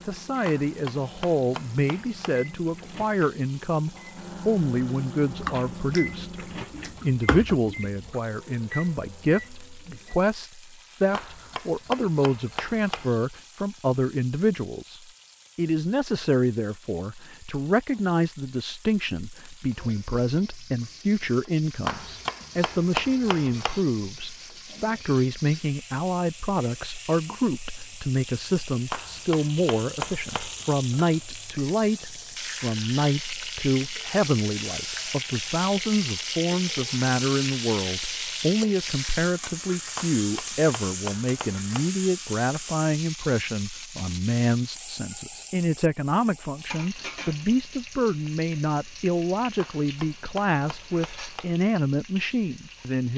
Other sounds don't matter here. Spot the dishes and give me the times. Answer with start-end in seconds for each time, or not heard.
not heard.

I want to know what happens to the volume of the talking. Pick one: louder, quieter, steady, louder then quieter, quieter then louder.
steady.